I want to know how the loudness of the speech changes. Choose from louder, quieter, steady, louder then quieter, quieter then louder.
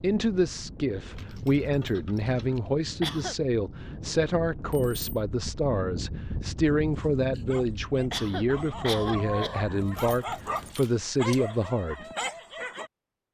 steady.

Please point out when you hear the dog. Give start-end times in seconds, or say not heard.
6.9-12.9.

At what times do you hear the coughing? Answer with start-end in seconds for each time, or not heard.
2.2-3.4, 7.3-9.6.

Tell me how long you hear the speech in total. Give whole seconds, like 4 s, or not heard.
12 s.